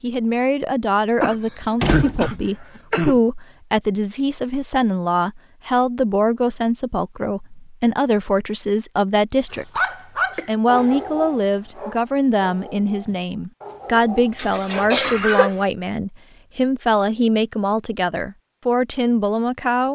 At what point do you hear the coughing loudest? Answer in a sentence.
The volume of the coughing peaks at 15 seconds.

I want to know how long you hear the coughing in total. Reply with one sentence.
You can hear the coughing for 4 seconds altogether.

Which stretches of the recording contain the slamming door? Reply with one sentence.
The slamming door can be heard from 1.8 to 2.3 s.